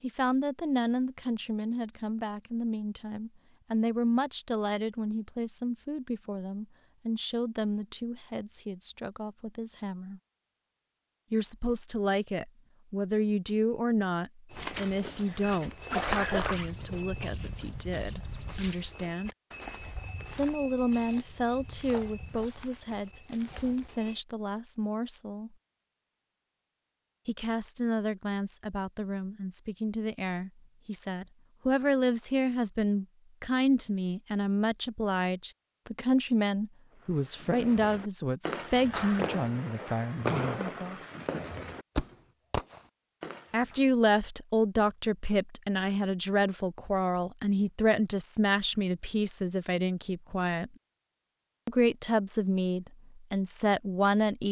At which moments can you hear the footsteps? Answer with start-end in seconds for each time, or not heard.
14.5-24.2.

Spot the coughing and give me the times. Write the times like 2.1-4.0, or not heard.
15.1-16.4.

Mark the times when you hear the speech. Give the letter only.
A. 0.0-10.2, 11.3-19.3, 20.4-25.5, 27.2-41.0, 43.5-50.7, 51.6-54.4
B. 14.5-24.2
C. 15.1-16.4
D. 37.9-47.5
A.